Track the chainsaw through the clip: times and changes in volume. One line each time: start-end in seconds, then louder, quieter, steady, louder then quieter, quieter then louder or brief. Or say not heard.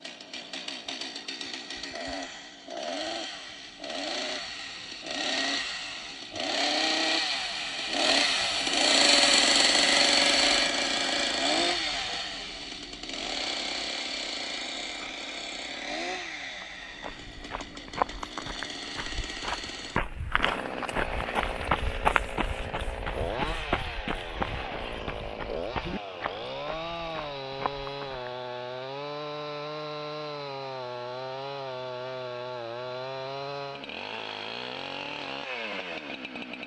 0.0-36.6 louder then quieter.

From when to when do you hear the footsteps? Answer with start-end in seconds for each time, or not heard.
16.6-28.3.